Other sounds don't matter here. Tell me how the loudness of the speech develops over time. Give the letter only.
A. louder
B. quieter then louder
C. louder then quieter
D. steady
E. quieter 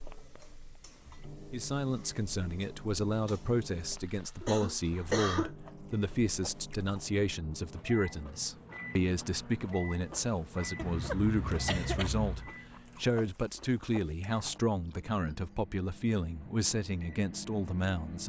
D.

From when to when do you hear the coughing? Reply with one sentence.
You can hear the coughing from 4.4 to 5.5 s and from 10.8 to 12.5 s.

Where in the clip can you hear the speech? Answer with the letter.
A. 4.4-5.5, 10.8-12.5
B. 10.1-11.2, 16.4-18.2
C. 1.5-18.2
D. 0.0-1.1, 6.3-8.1
C.